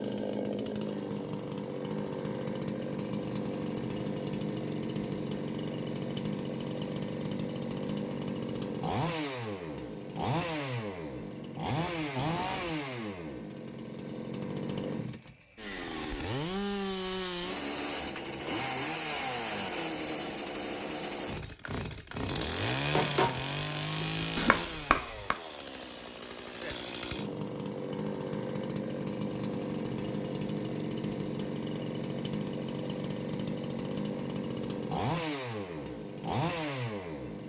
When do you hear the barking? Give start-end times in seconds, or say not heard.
not heard.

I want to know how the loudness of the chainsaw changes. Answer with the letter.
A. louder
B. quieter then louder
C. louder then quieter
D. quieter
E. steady
E.